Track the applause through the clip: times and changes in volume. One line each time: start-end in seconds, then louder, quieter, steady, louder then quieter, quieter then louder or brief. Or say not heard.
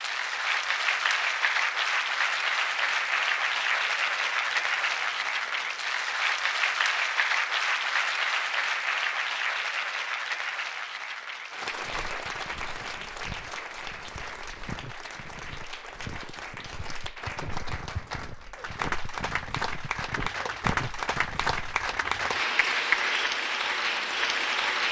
0.0-24.8 quieter then louder.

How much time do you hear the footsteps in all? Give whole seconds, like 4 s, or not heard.
10 s.